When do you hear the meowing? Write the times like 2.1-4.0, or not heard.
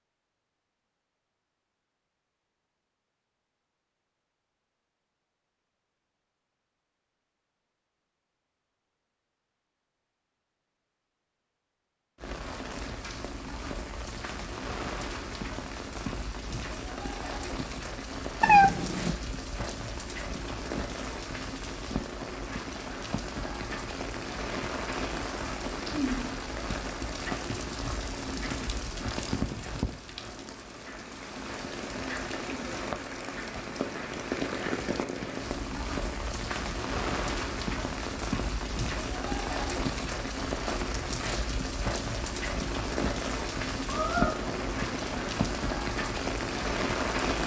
18.4-19.1, 43.9-45.5.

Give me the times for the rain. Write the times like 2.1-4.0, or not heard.
12.2-47.4.